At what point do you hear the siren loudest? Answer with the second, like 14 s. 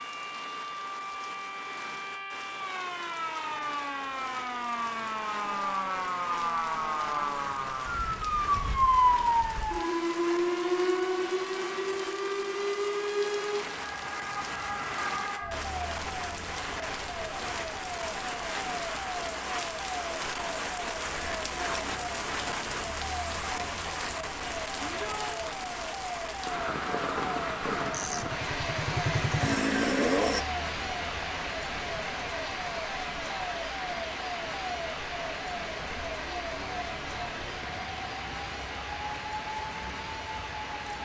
9 s.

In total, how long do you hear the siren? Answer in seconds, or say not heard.
41 s.